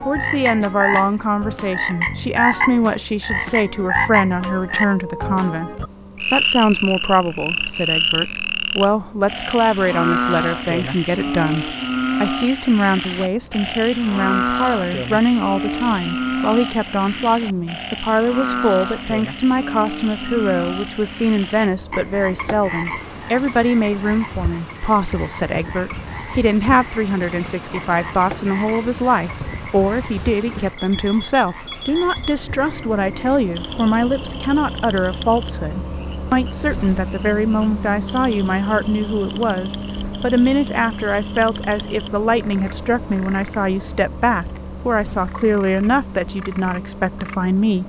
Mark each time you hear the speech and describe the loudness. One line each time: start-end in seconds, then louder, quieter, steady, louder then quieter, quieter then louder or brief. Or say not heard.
0.1-47.8 steady.